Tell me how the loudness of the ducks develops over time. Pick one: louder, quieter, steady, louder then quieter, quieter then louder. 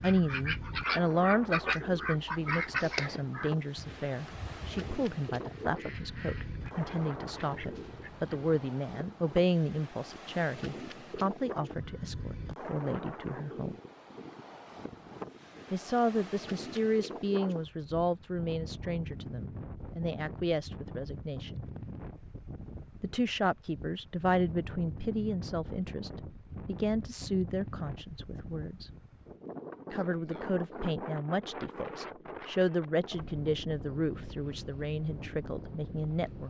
quieter.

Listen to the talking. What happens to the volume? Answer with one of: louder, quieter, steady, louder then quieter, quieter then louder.
steady.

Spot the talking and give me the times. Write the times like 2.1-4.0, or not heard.
0.0-13.8, 15.7-21.6, 23.0-28.9, 29.9-36.4.